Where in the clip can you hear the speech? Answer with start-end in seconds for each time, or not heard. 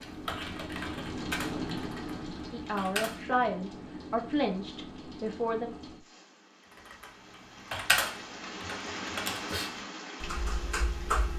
2.5-5.7.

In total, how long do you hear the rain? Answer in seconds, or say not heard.
11 s.